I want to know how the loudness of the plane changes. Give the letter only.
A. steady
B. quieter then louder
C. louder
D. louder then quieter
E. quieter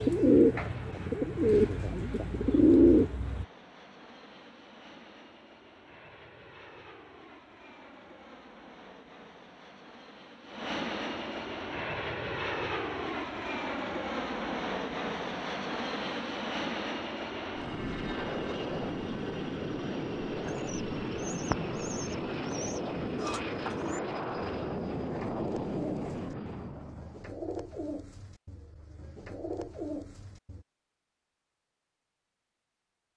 C.